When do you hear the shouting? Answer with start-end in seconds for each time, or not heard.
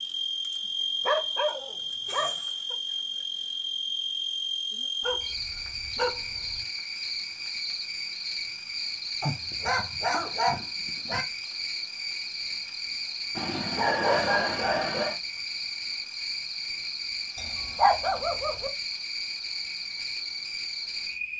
not heard.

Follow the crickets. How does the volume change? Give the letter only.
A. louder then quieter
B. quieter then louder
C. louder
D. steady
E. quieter
D.